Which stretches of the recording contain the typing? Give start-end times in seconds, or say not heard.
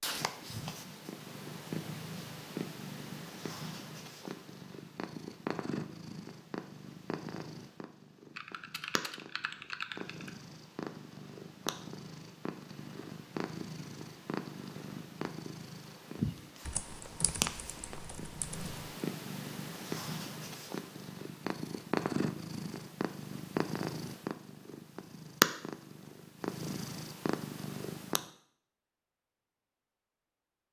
8.3-10.3, 16.6-18.8.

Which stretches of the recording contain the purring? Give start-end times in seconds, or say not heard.
0.0-28.2.